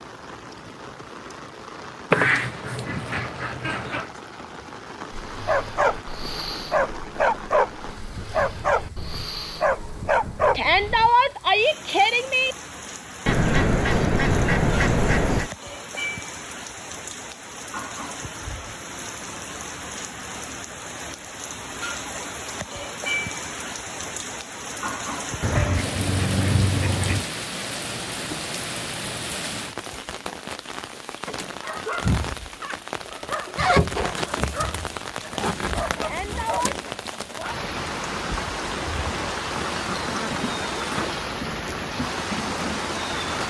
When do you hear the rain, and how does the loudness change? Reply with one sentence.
You can hear the rain from 0.0 to 43.4 s, getting louder.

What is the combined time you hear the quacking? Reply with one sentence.
The quacking can be heard for 8 seconds in total.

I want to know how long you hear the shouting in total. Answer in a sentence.
You can hear the shouting for 3 seconds altogether.